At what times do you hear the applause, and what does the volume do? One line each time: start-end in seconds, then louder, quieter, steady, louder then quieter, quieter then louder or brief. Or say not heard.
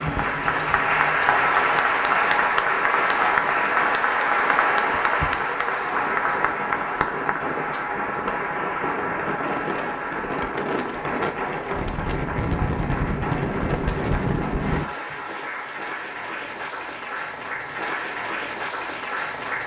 0.0-19.6 quieter.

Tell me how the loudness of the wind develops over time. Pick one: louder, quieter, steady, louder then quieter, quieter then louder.
louder.